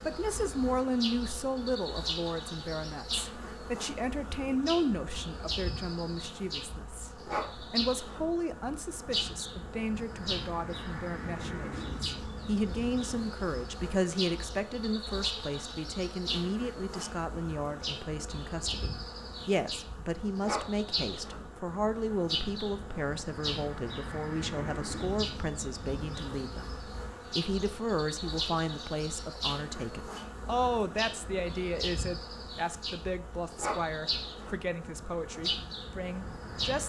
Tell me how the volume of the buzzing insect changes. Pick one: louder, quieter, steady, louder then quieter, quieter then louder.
steady.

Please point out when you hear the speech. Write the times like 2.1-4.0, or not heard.
0.0-26.6, 27.4-36.8.